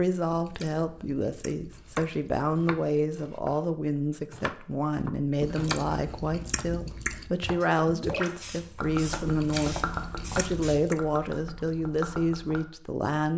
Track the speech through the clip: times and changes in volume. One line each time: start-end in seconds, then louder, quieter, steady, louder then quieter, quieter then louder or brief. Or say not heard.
0.0-13.3 steady.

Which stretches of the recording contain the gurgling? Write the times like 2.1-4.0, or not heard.
7.9-12.7.